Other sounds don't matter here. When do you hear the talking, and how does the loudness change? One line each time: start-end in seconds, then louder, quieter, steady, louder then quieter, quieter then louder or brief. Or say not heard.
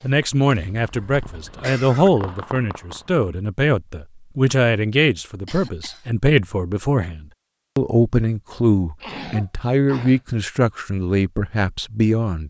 0.0-12.4 steady.